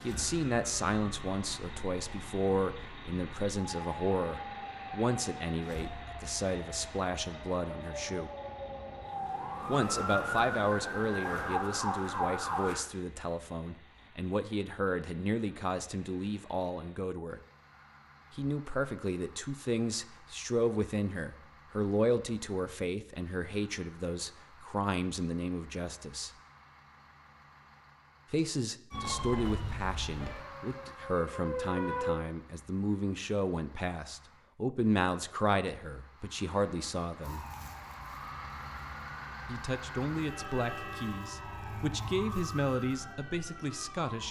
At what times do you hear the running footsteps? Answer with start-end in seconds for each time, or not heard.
not heard.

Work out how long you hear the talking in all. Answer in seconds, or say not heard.
38 s.